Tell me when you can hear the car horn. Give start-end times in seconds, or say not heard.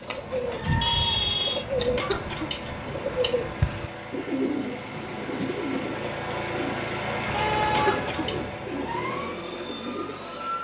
0.8-1.6, 7.2-8.6.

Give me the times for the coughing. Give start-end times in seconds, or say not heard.
1.9-2.8, 7.7-8.3.